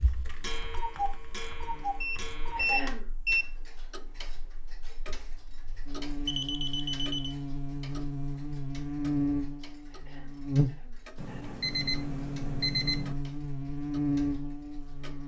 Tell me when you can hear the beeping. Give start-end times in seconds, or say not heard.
2.0-3.5, 6.2-7.3, 11.2-13.2.